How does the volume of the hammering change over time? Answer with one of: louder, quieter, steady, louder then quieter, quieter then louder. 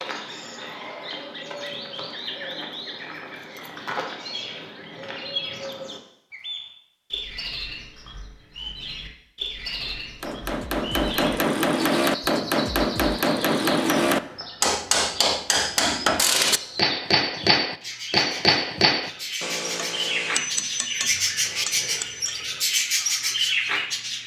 quieter.